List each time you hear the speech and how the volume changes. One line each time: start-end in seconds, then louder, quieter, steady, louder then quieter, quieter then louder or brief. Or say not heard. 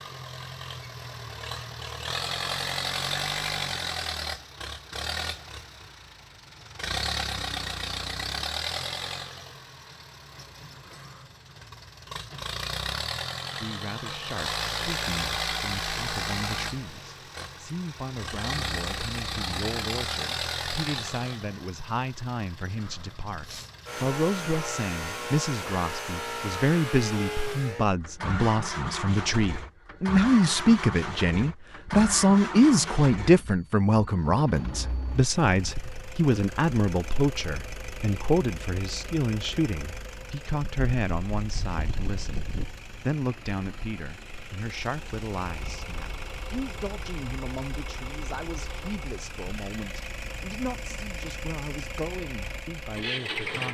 13.6-53.7 louder then quieter.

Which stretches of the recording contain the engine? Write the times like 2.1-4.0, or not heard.
0.0-53.7.